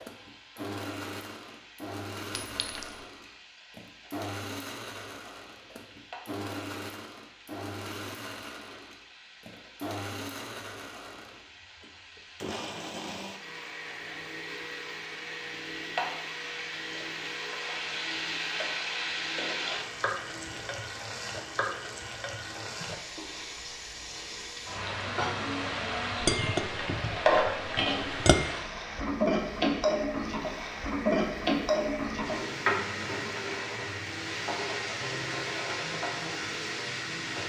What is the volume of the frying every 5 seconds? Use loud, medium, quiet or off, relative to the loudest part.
quiet, quiet, quiet, medium, medium, loud, loud, medium.